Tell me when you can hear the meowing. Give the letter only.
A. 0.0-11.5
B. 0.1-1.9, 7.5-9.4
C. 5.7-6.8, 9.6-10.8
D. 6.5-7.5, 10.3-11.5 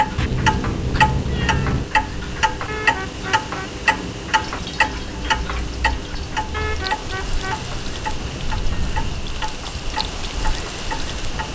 B.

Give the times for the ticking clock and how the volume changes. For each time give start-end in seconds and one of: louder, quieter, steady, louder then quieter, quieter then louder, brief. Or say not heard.
0.0-11.5 quieter.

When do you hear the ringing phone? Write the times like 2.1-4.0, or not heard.
2.6-3.7, 6.5-7.7.